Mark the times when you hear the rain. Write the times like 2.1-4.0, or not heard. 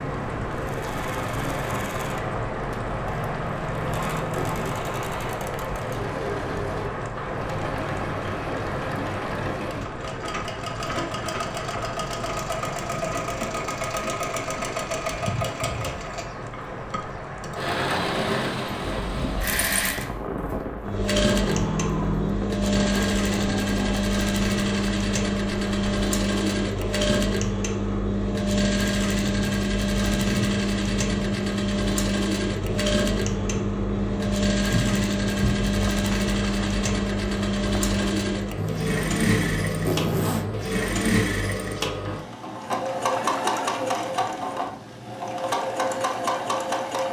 0.0-38.3.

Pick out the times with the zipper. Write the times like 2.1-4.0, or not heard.
3.0-4.8, 21.4-22.4, 38.5-40.5.